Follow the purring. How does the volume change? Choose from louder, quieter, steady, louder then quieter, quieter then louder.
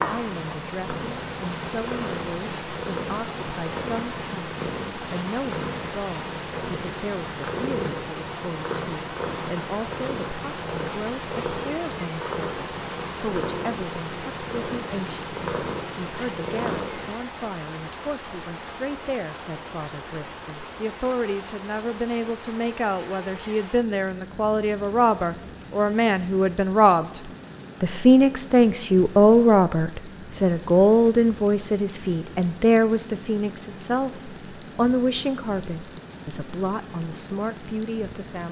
steady.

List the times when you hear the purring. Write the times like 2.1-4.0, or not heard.
0.0-17.1.